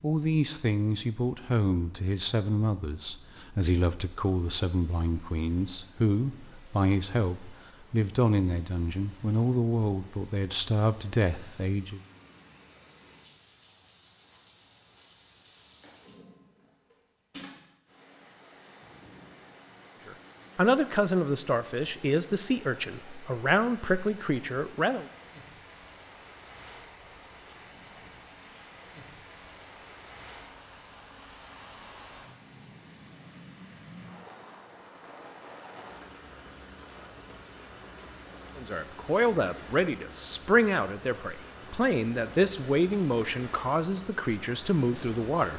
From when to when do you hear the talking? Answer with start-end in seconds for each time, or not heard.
0.0-12.0, 20.1-25.1, 38.5-45.5.